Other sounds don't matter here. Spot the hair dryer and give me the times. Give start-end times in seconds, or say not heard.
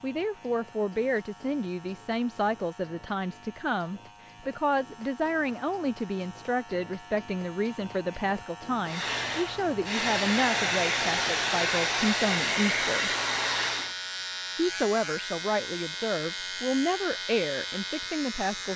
8.8-13.9.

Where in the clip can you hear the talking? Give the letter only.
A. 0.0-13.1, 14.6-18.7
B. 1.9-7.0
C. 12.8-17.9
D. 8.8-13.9
A.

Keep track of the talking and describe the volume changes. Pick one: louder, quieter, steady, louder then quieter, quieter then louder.
steady.